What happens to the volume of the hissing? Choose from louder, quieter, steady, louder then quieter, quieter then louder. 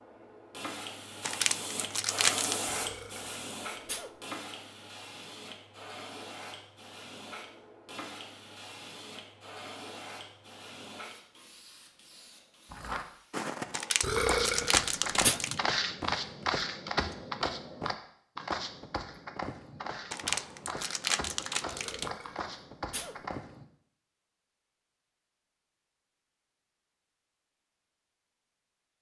quieter.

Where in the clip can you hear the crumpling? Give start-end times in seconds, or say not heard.
1.2-2.5, 13.7-15.6, 20.1-22.1.